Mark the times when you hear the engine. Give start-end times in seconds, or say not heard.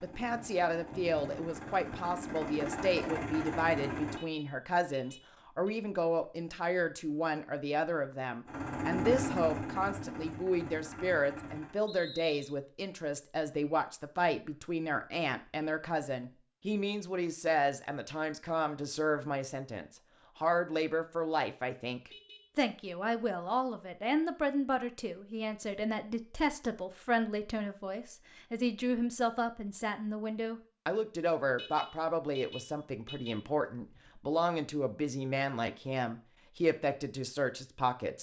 0.0-4.2, 8.4-11.8.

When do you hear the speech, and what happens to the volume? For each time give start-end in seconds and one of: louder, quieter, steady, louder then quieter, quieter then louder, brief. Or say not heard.
0.0-38.1 steady.